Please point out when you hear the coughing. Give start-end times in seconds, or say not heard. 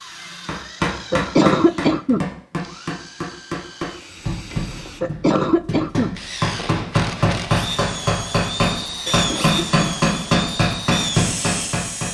0.9-2.3, 4.7-6.2, 8.8-9.9.